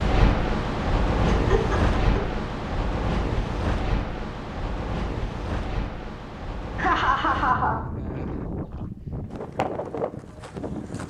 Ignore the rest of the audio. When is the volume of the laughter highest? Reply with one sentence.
The volume of the laughter peaks at 7 seconds.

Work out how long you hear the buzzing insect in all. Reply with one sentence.
The buzzing insect can't be heard in this clip.